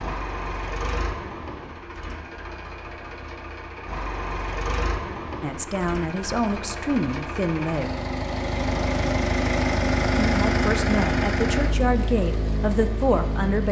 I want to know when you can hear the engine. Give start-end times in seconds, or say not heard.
0.0-13.6.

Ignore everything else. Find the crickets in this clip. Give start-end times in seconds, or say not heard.
not heard.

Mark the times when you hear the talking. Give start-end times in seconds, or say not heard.
5.4-7.9, 10.2-13.6.